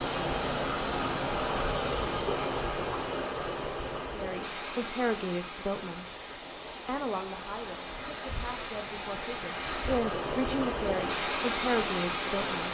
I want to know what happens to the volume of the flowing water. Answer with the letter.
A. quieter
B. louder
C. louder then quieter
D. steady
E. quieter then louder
E.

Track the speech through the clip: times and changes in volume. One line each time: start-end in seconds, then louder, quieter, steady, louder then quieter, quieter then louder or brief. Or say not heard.
4.2-6.0 brief
6.8-12.7 louder.